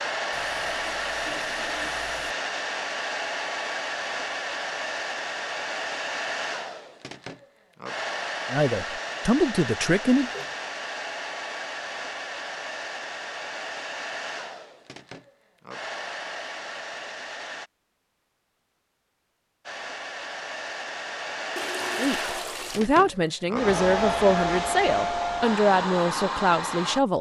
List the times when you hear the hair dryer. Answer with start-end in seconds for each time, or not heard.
0.0-17.7, 19.6-27.1.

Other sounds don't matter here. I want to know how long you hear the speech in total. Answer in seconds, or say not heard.
7 s.